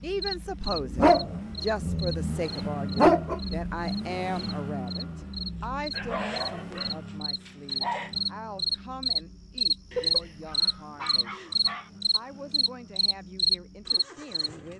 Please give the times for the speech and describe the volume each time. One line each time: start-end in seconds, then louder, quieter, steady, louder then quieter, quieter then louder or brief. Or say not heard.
0.0-14.7 quieter.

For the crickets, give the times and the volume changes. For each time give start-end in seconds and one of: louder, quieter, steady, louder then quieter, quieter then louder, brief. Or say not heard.
0.2-14.5 louder.